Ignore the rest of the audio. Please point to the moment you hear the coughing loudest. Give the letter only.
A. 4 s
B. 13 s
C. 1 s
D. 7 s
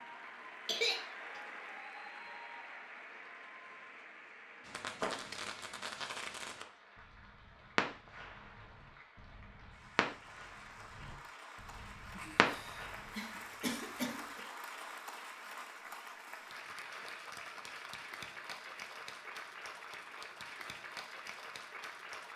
C.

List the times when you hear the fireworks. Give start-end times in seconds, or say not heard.
4.7-13.1.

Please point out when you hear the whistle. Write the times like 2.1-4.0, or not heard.
not heard.